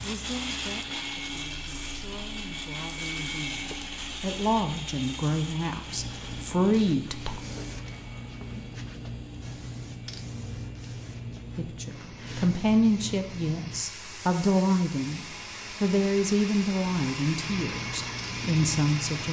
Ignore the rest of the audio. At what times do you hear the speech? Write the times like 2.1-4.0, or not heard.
0.0-7.3, 11.6-19.2.